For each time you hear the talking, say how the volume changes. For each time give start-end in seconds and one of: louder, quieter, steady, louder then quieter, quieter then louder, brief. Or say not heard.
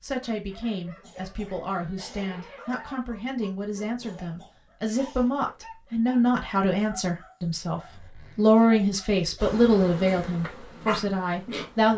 0.0-11.9 louder.